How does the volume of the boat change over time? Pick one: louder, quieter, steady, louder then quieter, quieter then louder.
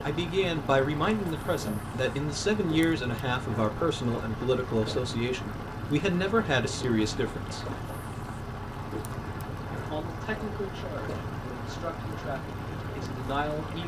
steady.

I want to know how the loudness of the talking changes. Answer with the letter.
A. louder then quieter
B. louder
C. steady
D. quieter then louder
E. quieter
E.